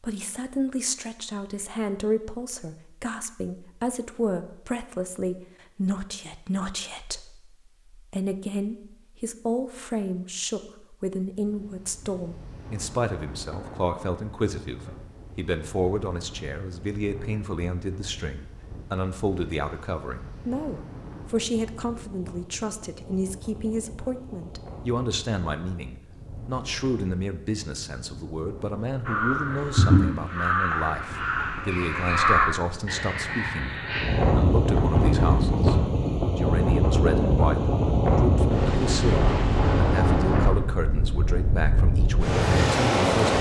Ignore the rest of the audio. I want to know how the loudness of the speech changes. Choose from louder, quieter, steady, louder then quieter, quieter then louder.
steady.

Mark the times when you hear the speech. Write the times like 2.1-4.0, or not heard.
0.0-43.3.